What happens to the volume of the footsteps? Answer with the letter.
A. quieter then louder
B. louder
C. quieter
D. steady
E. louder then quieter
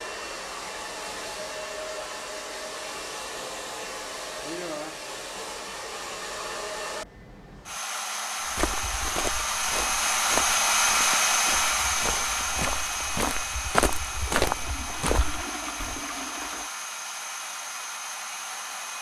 B.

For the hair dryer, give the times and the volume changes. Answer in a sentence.
You can hear the hair dryer from 0.0 to 18.9 s, getting louder then quieter.